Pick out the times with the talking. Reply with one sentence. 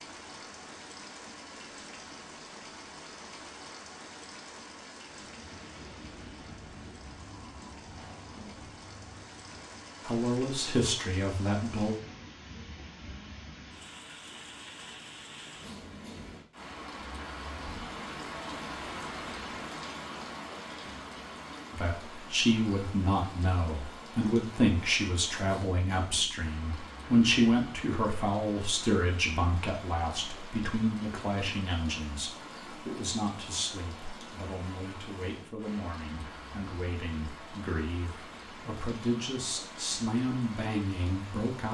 You can hear the talking from 10.1 to 11.9 s and from 21.7 to 41.7 s.